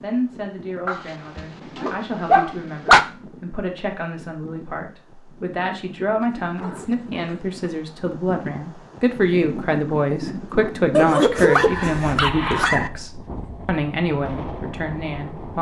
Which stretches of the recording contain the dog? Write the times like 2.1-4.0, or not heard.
0.8-3.0, 6.2-7.5, 10.9-12.9.